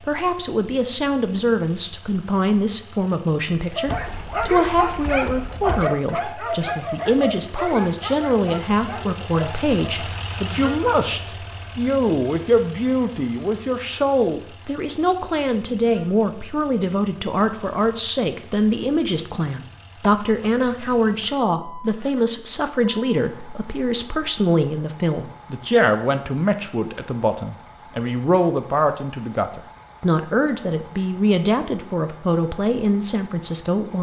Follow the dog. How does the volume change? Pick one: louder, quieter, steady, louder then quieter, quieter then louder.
quieter.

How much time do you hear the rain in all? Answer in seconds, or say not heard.
not heard.